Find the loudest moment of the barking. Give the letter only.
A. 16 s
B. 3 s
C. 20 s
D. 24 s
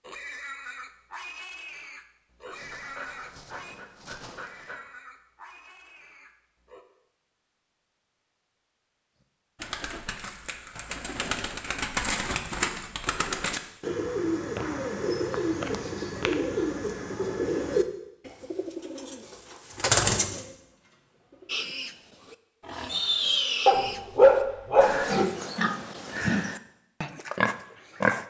D.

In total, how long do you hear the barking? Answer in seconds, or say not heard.
4 s.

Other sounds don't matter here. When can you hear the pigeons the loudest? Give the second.
20 s.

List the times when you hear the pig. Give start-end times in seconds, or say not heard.
0.1-6.8, 21.4-28.2.